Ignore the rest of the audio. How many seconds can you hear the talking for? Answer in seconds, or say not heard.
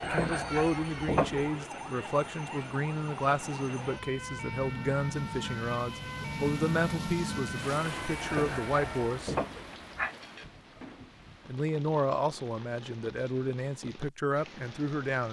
13 s.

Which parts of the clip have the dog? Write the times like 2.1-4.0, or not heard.
0.0-1.5, 8.2-10.2.